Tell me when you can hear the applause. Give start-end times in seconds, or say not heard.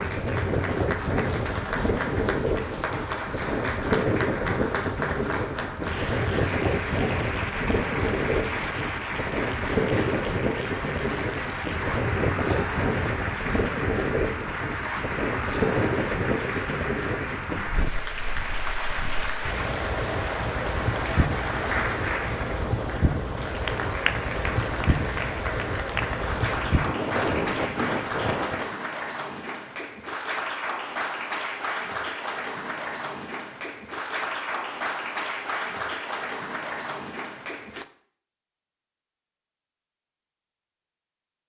0.0-37.9.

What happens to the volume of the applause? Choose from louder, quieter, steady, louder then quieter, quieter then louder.
steady.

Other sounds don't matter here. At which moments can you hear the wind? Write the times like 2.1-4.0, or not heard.
0.0-28.8.